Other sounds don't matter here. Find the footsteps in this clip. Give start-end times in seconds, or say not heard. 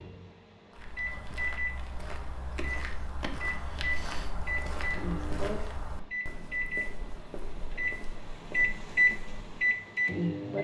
0.7-9.5.